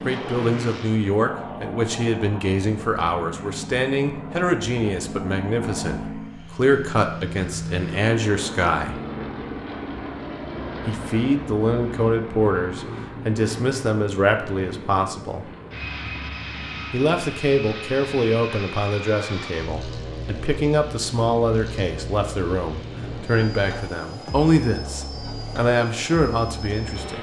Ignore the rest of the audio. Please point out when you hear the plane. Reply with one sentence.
You can hear the plane from 0.0 to 27.1 s.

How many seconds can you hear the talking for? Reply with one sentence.
You can hear the talking for 24 seconds altogether.